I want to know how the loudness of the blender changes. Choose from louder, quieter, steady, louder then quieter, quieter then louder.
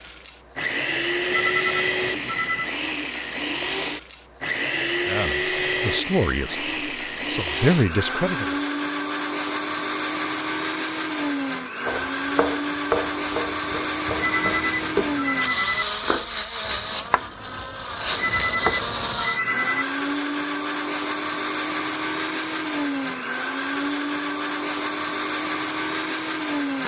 steady.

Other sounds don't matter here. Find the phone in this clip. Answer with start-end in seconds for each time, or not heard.
1.3-2.8, 14.2-15.8, 18.1-19.9.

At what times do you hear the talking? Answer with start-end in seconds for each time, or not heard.
5.0-8.6.